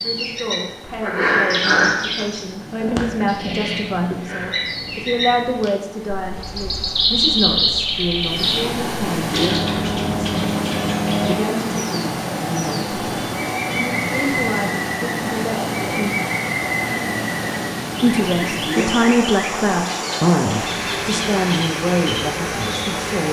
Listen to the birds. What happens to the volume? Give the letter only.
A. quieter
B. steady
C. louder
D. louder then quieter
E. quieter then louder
A.